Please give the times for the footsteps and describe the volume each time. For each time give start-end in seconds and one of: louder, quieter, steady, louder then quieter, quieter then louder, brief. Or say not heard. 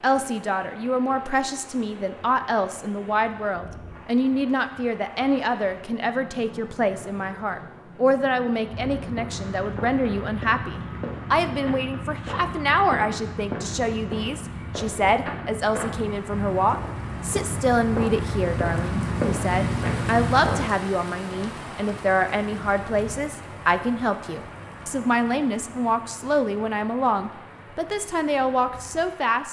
8.7-20.7 louder.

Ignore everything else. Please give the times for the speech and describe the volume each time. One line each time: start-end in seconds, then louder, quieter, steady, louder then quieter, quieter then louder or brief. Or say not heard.
0.0-29.4 steady.